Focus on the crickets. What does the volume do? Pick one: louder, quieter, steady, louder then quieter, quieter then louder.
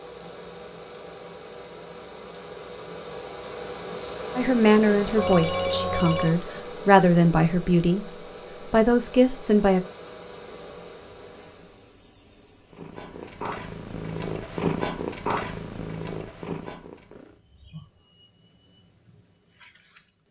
louder.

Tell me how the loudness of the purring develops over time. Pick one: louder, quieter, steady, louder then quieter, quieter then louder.
louder then quieter.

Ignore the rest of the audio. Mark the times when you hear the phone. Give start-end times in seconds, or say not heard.
5.2-6.3.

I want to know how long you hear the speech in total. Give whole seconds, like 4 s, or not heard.
5 s.